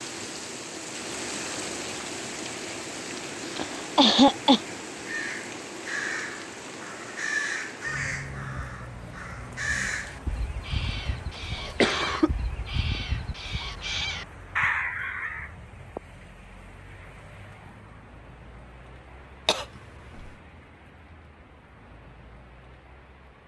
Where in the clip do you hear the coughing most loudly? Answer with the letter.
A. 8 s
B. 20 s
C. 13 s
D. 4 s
D.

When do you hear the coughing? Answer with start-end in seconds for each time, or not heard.
3.4-4.6, 11.7-12.3, 19.4-20.3.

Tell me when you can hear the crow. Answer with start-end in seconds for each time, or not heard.
5.0-15.5.